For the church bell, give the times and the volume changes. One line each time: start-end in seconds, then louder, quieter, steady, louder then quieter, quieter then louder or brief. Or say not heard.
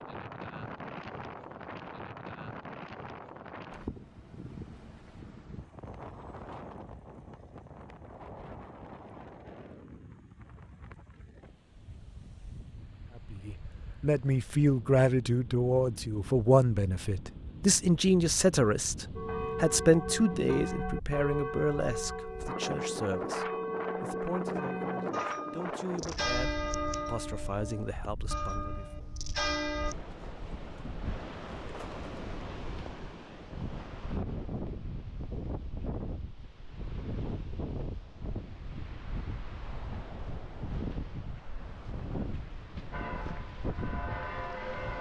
19.1-29.9 steady
42.9-44.9 brief.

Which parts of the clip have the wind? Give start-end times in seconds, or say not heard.
0.0-44.9.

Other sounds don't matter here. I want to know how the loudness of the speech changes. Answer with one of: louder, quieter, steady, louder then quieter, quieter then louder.
quieter.